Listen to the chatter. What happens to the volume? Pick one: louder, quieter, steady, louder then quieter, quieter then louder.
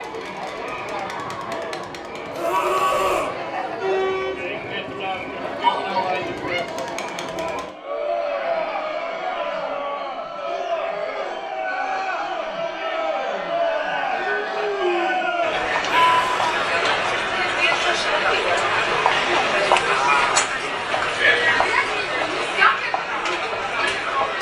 louder.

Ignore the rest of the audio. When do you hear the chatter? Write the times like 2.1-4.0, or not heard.
0.0-24.3.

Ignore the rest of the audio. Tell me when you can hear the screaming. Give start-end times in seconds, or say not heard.
2.3-3.4, 15.8-16.7.